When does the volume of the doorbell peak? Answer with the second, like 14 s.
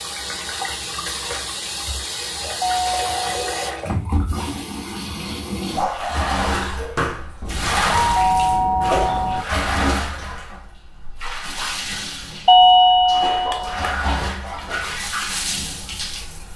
13 s.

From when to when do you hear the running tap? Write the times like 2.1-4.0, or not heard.
0.0-16.5.